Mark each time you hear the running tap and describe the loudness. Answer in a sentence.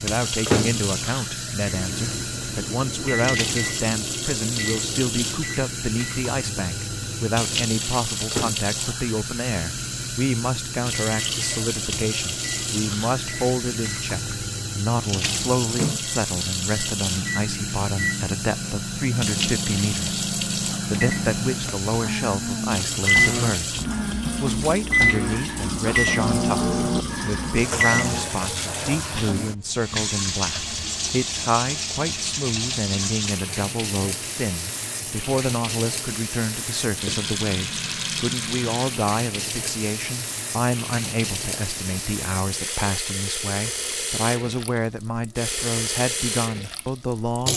The running tap can be heard from 0.0 to 47.5 s, at a steady volume.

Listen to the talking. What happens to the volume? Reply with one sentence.
The loudness of the talking stays about the same.